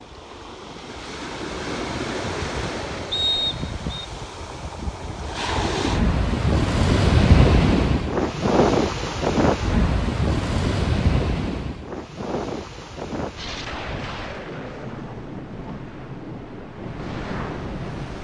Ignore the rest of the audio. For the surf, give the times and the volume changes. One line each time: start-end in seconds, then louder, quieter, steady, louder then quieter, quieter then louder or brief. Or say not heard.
0.0-18.1 louder then quieter.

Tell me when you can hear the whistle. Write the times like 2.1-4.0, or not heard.
3.1-4.0.